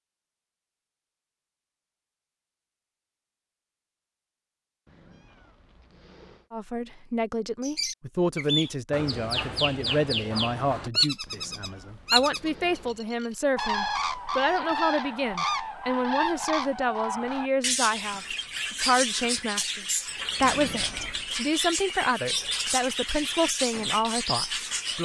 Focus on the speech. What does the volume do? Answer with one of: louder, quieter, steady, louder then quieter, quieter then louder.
steady.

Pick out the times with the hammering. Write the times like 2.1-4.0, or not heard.
not heard.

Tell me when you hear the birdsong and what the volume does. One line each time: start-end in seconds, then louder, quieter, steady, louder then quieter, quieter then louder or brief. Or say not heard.
7.6-24.9 steady.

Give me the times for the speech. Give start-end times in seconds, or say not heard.
6.5-24.9.